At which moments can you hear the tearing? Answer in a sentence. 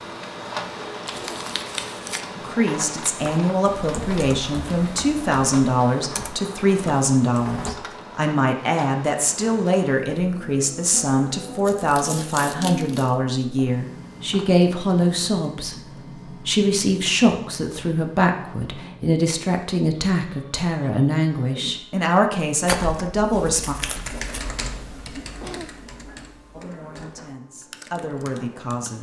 The tearing can be heard from 1.1 to 2.2 s, from 11.4 to 13.2 s and from 22.6 to 24.4 s.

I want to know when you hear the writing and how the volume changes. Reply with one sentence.
The writing can't be heard in this clip.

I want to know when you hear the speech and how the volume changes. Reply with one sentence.
The speech can be heard from 2.4 to 23.8 s, at a steady volume; and briefly from 26.5 to 28.9 s.